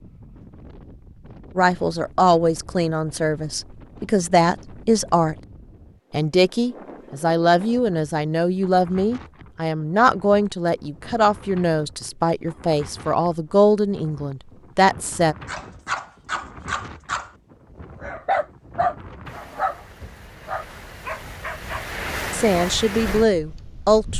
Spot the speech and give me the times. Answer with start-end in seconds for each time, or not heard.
1.6-5.3, 6.1-15.3, 22.3-24.1.